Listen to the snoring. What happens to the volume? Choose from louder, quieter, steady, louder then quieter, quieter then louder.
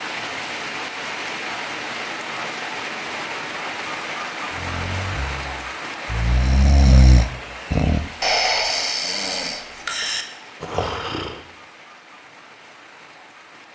louder then quieter.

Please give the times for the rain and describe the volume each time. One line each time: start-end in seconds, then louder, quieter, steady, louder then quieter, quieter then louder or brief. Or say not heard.
0.0-13.7 quieter.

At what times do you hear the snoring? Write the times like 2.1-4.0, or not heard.
4.5-11.4.